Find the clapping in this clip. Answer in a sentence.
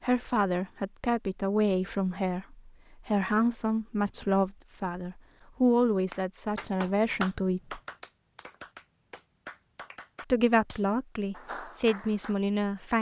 The clapping can be heard from 6.1 to 12.3 s.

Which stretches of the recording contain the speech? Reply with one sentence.
You can hear the speech from 0.0 to 7.8 s and from 10.3 to 12.9 s.